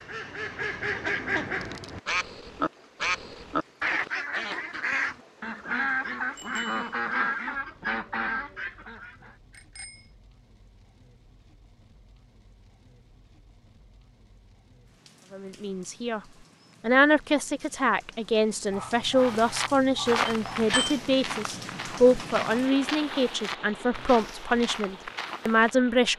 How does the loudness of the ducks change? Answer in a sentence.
The volume of the ducks stays about the same.